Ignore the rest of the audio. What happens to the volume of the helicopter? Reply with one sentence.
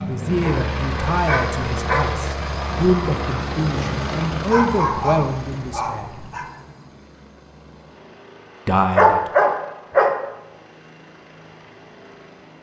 The volume of the helicopter goes down.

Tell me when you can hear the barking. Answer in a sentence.
You can hear the barking from 0.4 to 2.0 s, from 4.5 to 6.5 s and from 8.9 to 10.2 s.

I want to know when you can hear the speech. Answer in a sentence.
The speech can be heard from 0.1 to 6.3 s and from 8.7 to 9.3 s.